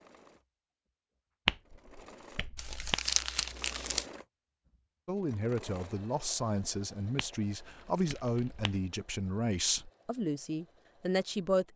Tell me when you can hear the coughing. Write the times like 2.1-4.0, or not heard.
not heard.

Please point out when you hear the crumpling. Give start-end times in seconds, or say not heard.
2.5-4.0, 7.8-8.7.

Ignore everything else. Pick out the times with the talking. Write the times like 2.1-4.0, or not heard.
5.0-11.7.